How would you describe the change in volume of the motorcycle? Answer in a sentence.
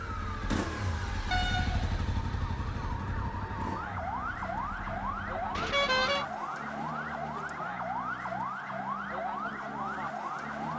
The loudness of the motorcycle goes down.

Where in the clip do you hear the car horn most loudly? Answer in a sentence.
The loudest moment of the car horn is at 6 seconds.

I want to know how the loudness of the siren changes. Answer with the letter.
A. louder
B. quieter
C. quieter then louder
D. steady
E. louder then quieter
A.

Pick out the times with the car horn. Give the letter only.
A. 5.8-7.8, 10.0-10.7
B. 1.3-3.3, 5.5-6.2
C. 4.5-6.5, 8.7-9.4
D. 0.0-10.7
B.